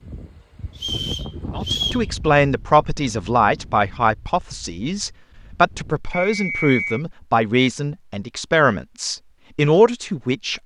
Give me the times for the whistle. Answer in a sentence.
The whistle can be heard from 0.8 to 2.0 s and from 6.1 to 7.0 s.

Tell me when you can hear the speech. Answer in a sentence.
The speech can be heard from 1.6 to 10.6 s.